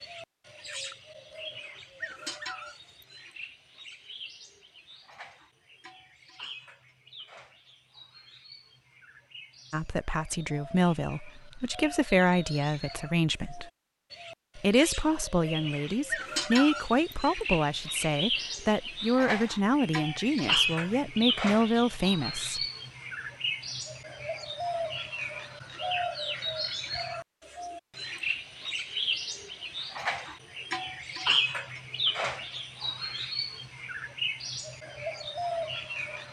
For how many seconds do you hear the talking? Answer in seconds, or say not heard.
12 s.